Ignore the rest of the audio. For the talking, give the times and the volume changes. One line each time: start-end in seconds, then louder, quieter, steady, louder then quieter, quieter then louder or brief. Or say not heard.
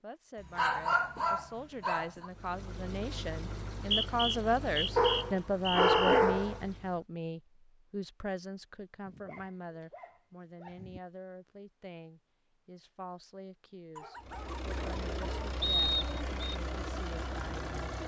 0.0-18.0 louder then quieter.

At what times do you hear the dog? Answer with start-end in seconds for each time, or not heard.
0.6-2.2, 5.0-6.6, 9.1-11.0, 13.9-15.5.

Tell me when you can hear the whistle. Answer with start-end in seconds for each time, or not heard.
3.8-6.2, 15.6-16.6.